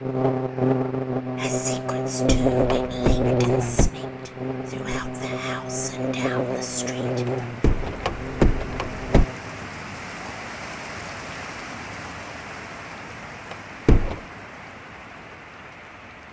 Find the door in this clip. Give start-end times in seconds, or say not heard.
2.2-3.9, 7.6-9.2, 13.5-14.2.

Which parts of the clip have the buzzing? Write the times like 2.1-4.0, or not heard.
0.0-9.7.